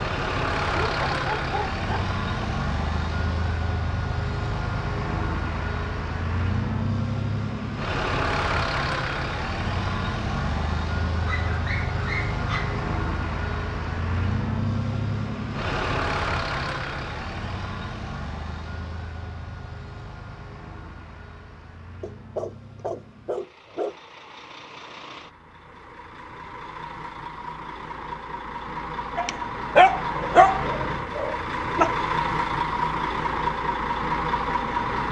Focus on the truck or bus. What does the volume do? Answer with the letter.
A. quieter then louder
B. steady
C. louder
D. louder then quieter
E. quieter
A.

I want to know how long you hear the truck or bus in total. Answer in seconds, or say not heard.
35 s.